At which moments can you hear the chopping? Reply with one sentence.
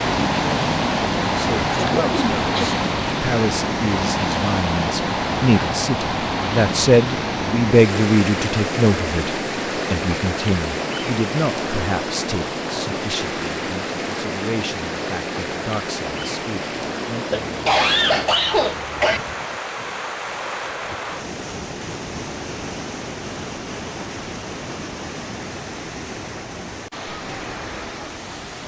The chopping can't be heard in this clip.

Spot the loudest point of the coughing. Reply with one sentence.
The loudest moment of the coughing is at 18 seconds.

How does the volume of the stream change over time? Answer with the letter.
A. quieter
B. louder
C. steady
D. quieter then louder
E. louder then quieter
A.